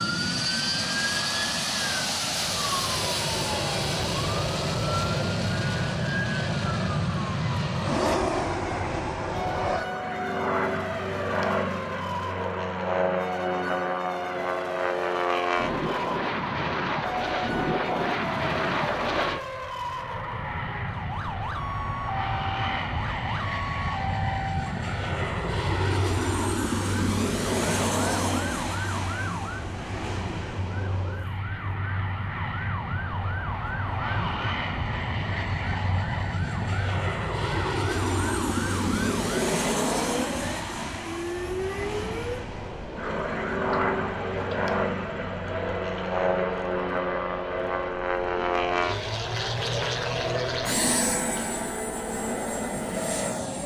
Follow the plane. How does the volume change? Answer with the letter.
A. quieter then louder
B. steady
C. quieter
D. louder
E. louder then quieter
B.